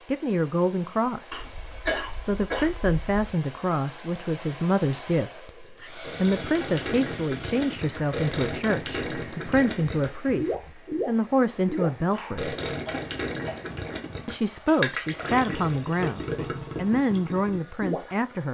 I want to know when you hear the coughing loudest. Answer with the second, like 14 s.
2 s.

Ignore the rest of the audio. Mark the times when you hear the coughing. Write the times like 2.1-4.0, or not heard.
1.3-3.3, 11.8-13.7.